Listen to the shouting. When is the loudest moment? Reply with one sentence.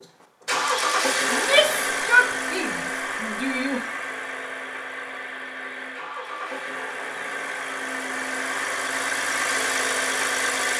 The loudest moment of the shouting is at 2 seconds.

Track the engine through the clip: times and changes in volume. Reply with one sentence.
The engine can be heard from 0.0 to 10.7 s, getting quieter then louder.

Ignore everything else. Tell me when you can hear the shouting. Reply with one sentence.
The shouting can be heard from 1.3 to 3.9 s.